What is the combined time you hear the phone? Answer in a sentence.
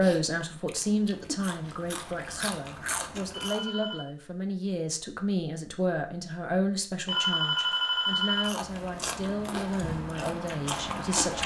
You can hear the phone for 2 seconds altogether.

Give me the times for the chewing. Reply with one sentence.
You can hear the chewing from 0.0 to 3.6 s and from 8.3 to 11.4 s.